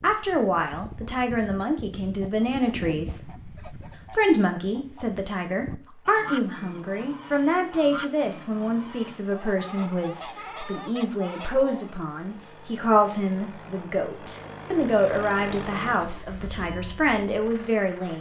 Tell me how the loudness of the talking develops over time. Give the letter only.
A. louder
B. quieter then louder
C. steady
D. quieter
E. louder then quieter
C.